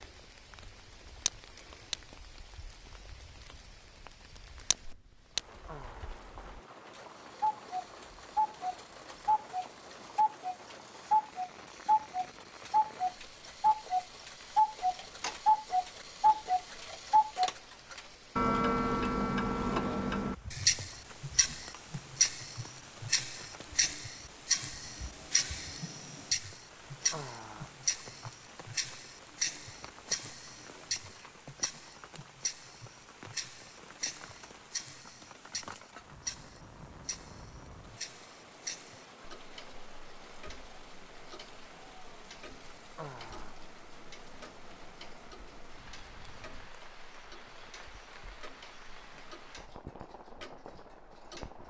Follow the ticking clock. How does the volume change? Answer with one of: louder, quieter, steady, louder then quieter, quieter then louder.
quieter.